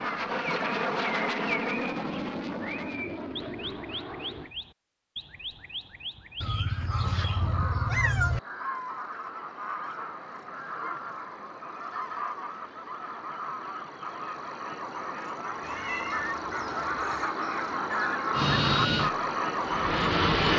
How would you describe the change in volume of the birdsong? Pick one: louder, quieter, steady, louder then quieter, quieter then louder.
louder.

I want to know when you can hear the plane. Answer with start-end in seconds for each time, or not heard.
0.0-4.5, 18.3-20.5.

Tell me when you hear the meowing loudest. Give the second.
8 s.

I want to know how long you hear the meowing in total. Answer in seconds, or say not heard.
4 s.